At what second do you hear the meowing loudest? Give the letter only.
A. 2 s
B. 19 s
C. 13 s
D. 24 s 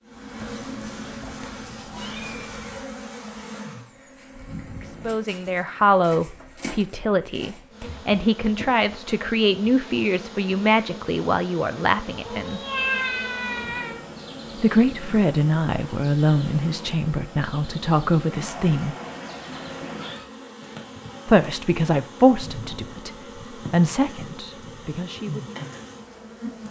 C.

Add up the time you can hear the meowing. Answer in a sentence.
You can hear the meowing for 6 seconds altogether.